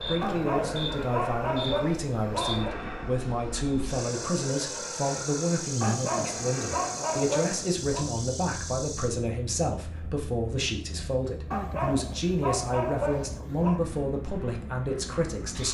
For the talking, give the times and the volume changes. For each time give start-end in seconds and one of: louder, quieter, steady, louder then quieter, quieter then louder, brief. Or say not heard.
0.1-15.6 steady.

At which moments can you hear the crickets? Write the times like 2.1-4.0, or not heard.
0.0-9.1.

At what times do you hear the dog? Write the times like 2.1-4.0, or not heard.
0.2-2.8, 5.8-8.1, 11.5-13.8.